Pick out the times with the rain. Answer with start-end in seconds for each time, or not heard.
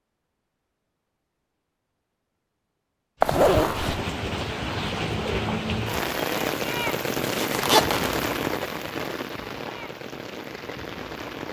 3.2-11.4.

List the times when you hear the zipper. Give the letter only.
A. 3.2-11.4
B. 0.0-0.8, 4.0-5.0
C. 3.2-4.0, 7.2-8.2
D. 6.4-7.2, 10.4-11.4
C.